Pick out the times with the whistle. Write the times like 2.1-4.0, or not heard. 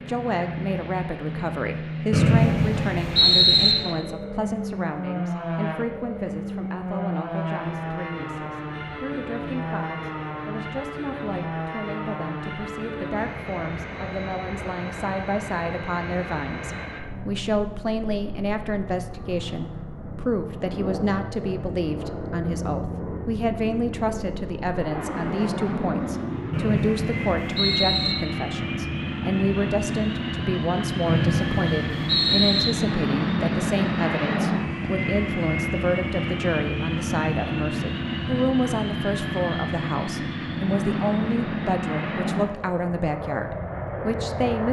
2.1-3.8, 26.5-28.1, 31.1-32.6.